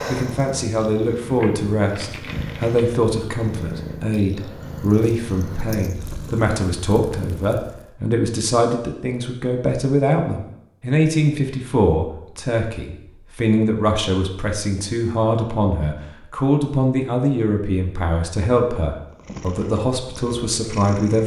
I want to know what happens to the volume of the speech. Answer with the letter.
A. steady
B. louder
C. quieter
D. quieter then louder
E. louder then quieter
A.